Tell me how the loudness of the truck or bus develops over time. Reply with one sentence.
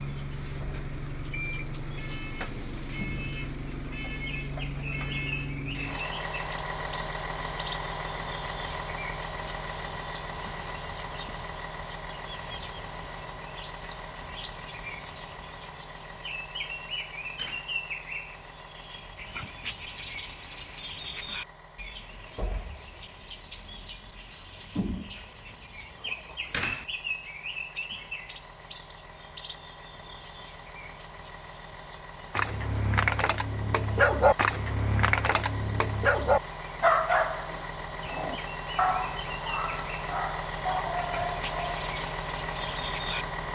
The loudness of the truck or bus goes down, then up.